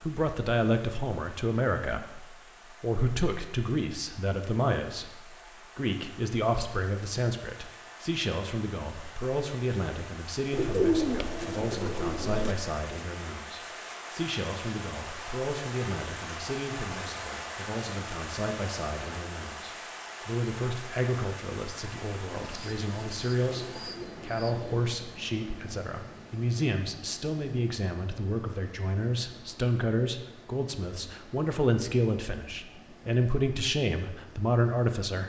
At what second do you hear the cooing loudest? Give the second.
11 s.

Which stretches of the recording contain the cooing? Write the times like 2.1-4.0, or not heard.
10.5-12.6, 22.3-24.9.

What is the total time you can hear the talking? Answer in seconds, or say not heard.
35 s.